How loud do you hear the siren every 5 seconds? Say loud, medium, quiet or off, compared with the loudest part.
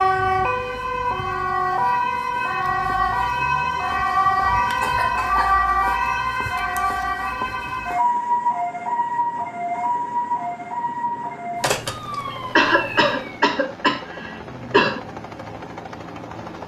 loud, loud, medium, off.